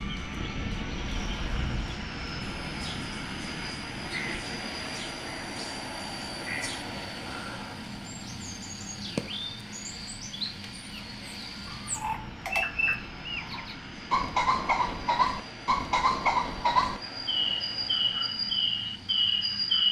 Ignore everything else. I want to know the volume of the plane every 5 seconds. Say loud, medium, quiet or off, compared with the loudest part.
loud, loud, medium, medium.